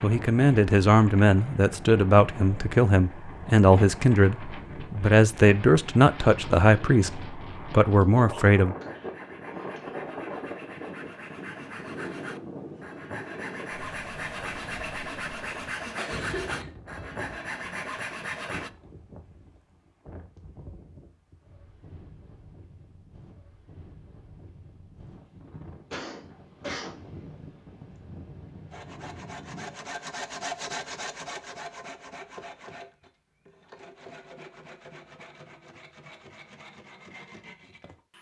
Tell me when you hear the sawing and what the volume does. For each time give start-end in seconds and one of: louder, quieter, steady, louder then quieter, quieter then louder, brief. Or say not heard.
8.7-18.7 louder
28.7-38.1 quieter.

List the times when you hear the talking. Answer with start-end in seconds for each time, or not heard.
0.0-8.8.